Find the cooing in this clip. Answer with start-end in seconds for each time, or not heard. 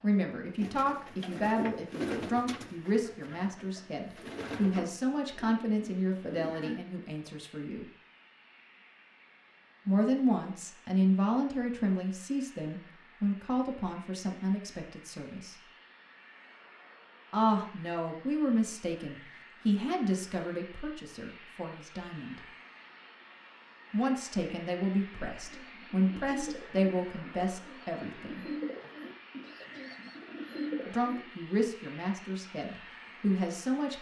0.6-6.8, 25.3-31.2.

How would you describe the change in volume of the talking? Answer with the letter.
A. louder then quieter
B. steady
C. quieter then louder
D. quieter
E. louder
B.